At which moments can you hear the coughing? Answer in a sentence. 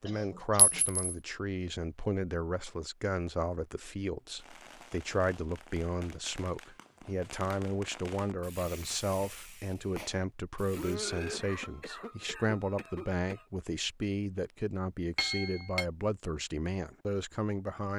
You can hear the coughing from 0.1 to 0.8 s and from 10.8 to 13.4 s.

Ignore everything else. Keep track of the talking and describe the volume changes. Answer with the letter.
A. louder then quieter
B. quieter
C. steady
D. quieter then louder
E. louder
C.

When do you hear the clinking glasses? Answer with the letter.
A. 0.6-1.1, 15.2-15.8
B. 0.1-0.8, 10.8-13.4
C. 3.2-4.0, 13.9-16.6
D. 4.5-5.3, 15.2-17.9
A.